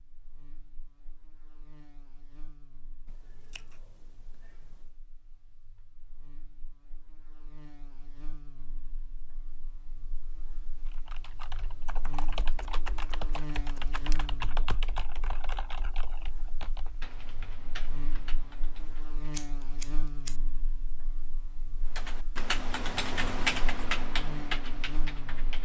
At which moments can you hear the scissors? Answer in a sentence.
The scissors can be heard from 3.0 to 4.9 s, from 12.2 to 14.2 s and from 18.8 to 20.4 s.